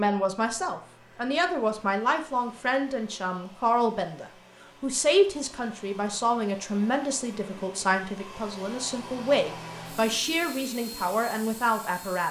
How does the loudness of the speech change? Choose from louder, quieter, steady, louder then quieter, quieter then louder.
steady.